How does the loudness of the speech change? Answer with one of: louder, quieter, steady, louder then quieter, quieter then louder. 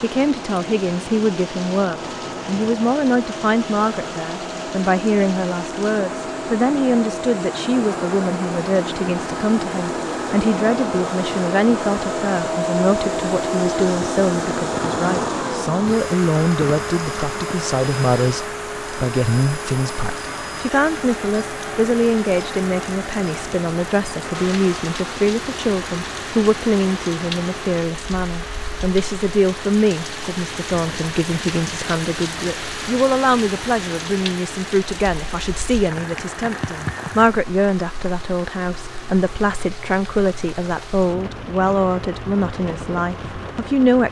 steady.